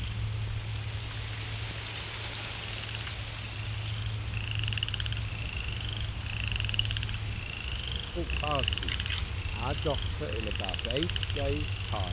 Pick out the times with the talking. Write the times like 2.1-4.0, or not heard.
8.2-12.0.